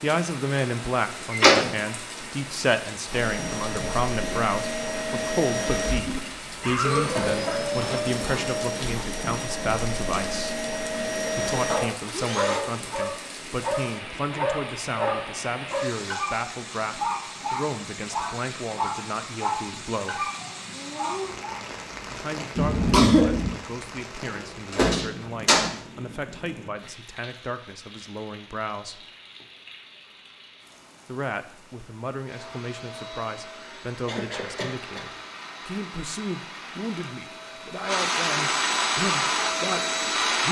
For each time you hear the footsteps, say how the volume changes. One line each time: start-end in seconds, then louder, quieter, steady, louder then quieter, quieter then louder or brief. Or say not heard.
not heard.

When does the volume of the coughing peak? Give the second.
23 s.